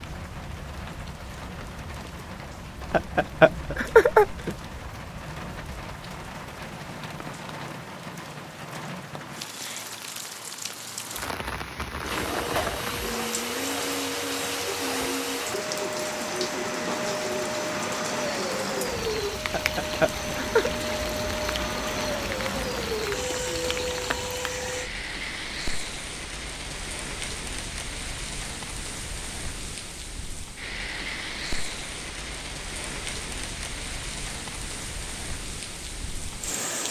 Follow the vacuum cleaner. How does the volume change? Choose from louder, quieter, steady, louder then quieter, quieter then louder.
steady.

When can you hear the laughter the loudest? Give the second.
4 s.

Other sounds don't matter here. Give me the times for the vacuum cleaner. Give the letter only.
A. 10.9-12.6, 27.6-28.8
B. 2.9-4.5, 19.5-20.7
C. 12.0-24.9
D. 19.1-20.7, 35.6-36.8
C.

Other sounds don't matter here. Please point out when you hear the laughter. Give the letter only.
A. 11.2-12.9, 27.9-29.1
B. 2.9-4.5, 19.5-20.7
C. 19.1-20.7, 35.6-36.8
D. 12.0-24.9
B.